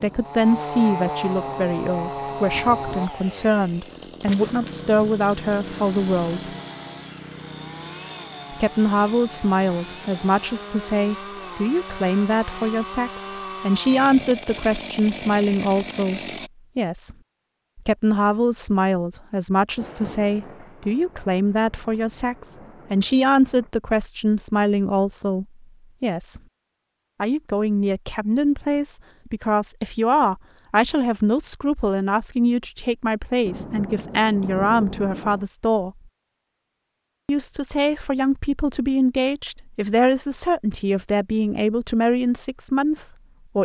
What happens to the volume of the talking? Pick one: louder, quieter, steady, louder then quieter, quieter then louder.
steady.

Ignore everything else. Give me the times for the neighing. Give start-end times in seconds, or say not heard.
not heard.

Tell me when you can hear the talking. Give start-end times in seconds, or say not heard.
0.0-6.5, 8.5-17.1, 17.8-26.4, 27.2-35.9, 37.2-43.6.